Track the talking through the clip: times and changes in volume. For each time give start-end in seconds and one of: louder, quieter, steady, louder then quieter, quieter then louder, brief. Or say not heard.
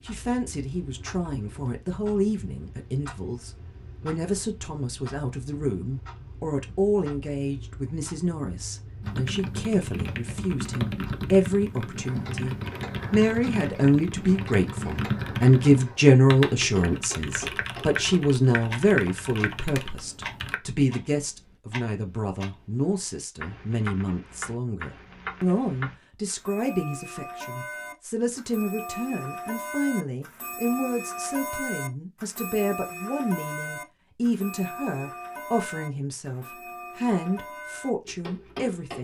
0.0-38.9 louder then quieter.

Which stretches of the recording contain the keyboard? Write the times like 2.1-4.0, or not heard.
9.0-20.6.